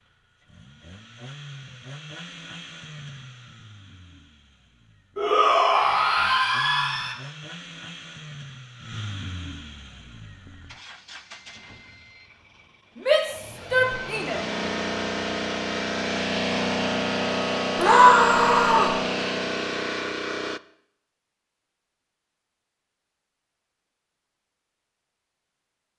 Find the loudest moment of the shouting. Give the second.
18 s.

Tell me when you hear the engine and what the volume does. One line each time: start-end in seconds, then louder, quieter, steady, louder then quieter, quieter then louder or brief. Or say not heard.
0.0-20.6 louder.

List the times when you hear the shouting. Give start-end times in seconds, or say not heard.
5.2-7.2, 13.1-14.4, 17.8-18.9.